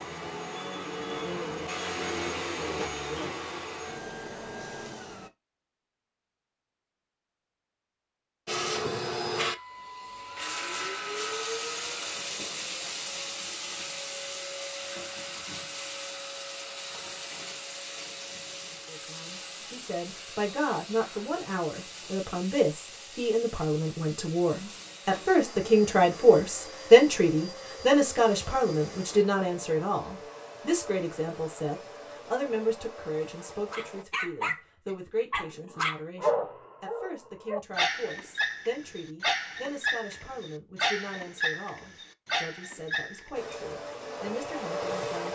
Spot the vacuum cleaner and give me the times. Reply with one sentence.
You can hear the vacuum cleaner from 0.0 to 5.3 s, from 8.4 to 34.0 s and from 43.3 to 45.3 s.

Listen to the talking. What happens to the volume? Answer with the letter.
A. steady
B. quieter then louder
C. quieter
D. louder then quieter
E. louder
D.